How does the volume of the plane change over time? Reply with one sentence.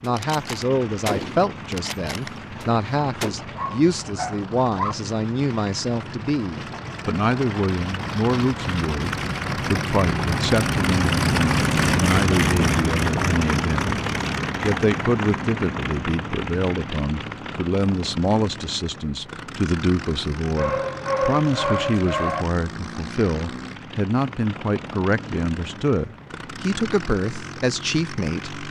The volume of the plane goes up, then down.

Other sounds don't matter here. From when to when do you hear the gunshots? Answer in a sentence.
You can hear the gunshots from 0.0 to 3.4 s.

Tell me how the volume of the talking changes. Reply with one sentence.
The loudness of the talking stays about the same.